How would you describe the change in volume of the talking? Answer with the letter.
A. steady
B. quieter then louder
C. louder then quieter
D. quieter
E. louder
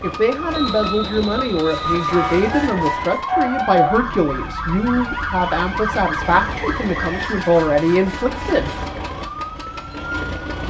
A.